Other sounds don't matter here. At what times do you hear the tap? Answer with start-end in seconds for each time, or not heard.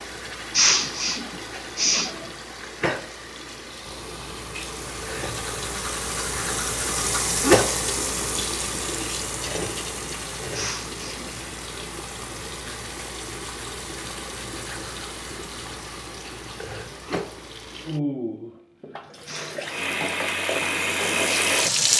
0.0-21.9.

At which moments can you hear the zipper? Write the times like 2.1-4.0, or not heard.
not heard.